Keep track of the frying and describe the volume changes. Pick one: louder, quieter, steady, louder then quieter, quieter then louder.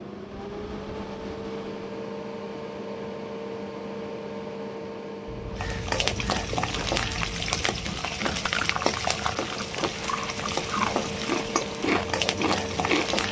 steady.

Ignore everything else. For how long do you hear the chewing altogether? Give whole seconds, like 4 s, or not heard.
8 s.